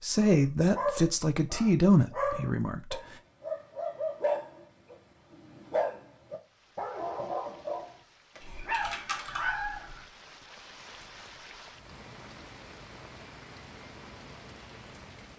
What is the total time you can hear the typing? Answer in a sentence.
The typing can be heard for 2 seconds in total.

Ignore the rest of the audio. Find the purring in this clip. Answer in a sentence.
The purring can't be heard in this clip.